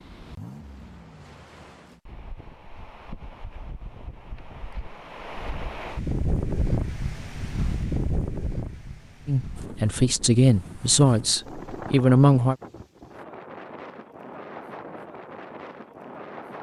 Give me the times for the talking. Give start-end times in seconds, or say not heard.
9.2-12.6.